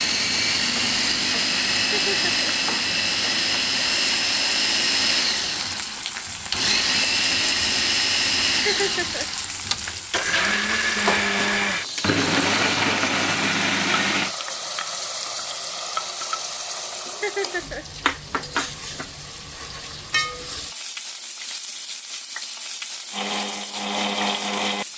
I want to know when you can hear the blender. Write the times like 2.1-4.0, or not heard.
0.0-14.3, 23.1-24.9.